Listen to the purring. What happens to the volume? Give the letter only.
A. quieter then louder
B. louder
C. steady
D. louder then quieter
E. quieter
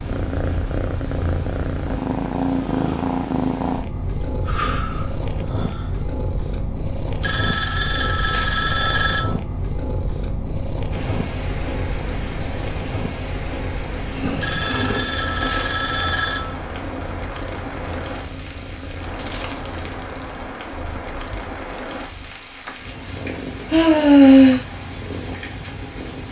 E.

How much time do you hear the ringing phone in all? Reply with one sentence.
You can hear the ringing phone for 4 seconds altogether.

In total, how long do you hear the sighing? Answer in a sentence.
The sighing can be heard for 4 seconds in total.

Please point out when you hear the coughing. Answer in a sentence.
The coughing can't be heard in this clip.